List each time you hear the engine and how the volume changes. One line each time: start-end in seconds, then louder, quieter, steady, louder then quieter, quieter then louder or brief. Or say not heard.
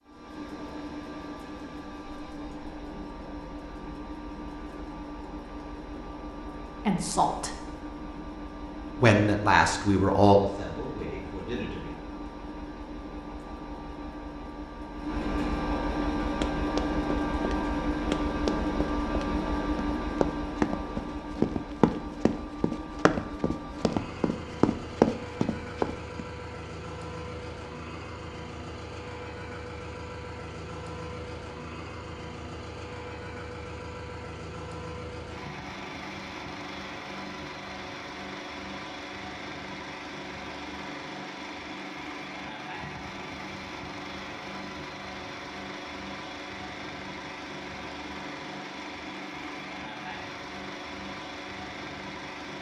0.0-52.5 louder then quieter.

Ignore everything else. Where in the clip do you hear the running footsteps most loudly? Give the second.
25 s.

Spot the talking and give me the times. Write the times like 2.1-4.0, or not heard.
6.8-7.5, 9.0-11.9.